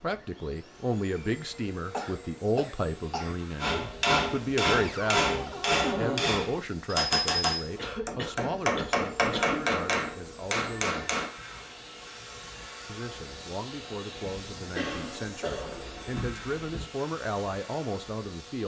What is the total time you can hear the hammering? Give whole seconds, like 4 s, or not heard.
8 s.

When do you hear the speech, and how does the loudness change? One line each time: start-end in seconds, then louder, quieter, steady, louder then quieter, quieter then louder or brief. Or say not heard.
0.0-11.2 quieter
12.8-18.6 louder.